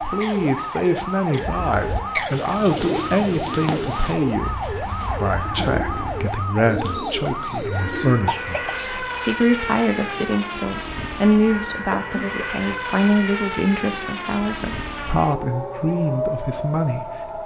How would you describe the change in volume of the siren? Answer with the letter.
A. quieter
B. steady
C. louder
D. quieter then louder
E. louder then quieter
B.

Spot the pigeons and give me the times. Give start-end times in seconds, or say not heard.
1.4-8.2.